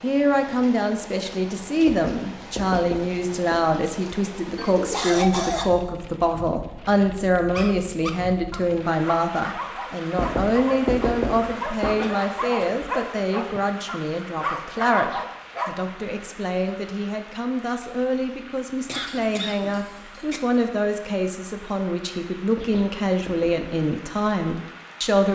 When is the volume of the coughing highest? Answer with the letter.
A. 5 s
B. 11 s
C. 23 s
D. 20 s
A.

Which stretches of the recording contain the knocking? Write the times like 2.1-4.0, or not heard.
1.9-3.6, 10.2-12.0, 22.6-23.8.